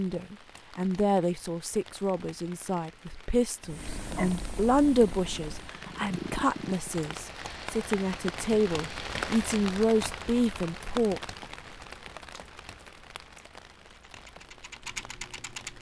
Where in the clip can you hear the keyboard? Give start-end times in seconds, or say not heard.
13.9-15.7.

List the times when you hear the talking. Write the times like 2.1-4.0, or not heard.
0.0-11.2.